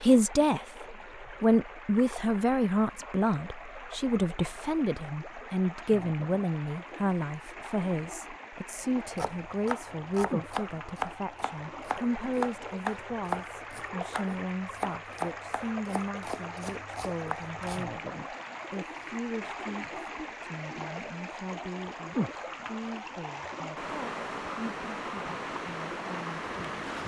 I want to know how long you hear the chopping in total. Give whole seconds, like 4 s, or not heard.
9 s.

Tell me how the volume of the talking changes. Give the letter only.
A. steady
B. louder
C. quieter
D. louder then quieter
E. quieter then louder
C.